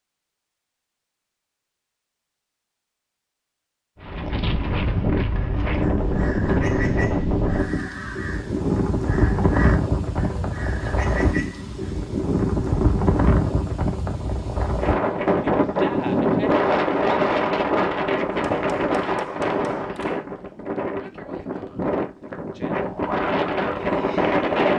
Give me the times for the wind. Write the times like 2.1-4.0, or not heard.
4.0-24.7.